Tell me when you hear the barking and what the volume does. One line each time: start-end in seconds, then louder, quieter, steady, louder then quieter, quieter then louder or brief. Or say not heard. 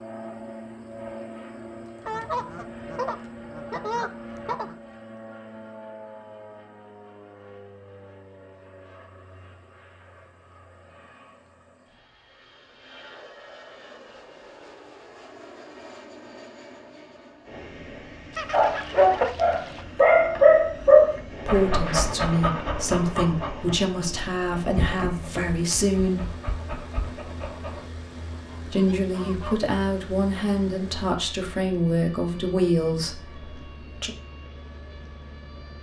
18.5-27.9 quieter.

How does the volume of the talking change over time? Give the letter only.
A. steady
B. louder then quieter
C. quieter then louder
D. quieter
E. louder
A.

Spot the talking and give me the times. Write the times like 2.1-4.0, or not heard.
21.4-26.3, 28.6-34.1.